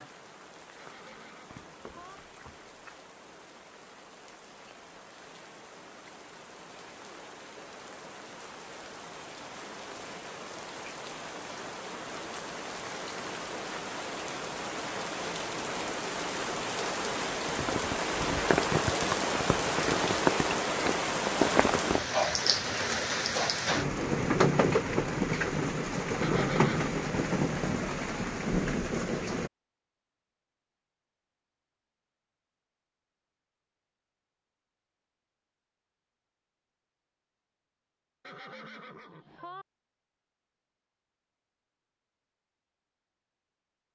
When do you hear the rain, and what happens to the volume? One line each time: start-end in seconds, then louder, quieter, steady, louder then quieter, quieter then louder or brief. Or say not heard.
0.0-29.5 louder.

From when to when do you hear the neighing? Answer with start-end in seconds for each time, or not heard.
0.8-2.2, 26.2-26.9, 38.2-39.6.